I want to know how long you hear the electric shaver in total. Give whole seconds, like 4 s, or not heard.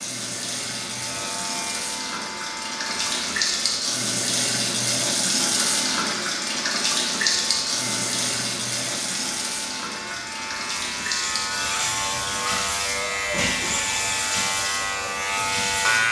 14 s.